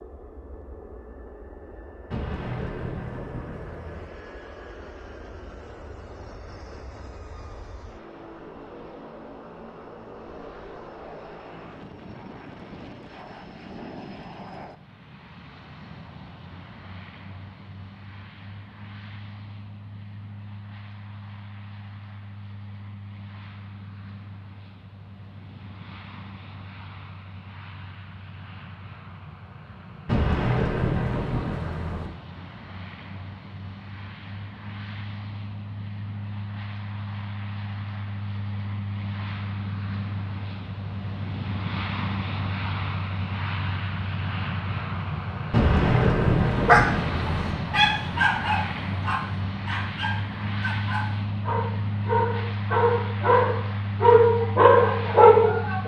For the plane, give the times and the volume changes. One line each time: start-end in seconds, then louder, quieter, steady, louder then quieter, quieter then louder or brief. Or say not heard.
0.0-55.8 louder.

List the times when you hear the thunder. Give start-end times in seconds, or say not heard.
2.1-4.1, 30.1-32.1, 45.5-47.5.